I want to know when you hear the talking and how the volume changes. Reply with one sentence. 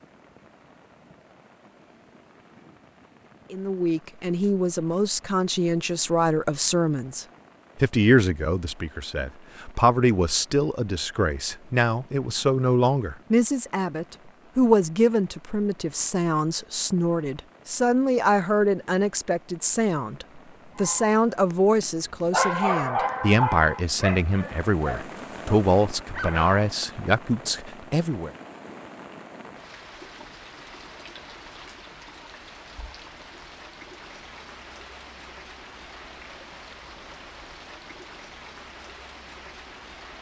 You can hear the talking from 3.5 to 28.3 s, at a steady volume.